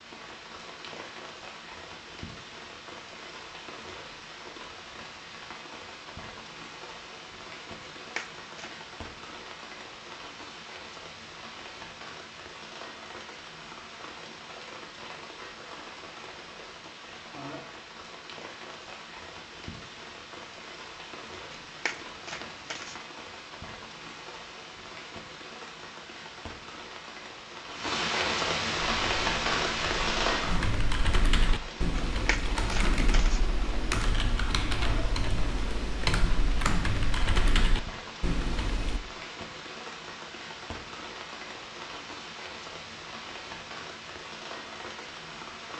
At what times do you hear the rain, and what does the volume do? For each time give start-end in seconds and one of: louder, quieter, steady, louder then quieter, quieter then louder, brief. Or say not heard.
0.0-45.7 louder then quieter.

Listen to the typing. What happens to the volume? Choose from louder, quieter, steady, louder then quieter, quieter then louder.
steady.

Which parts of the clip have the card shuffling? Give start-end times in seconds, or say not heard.
8.0-8.8, 21.5-23.1, 31.9-33.5.